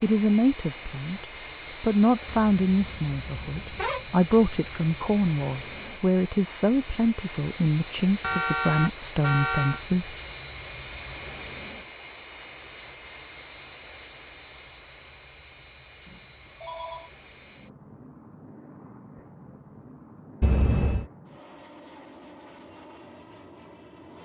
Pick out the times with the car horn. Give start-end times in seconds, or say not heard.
2.2-4.1, 8.2-9.8, 20.4-21.1.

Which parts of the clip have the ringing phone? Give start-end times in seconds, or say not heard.
16.1-17.1.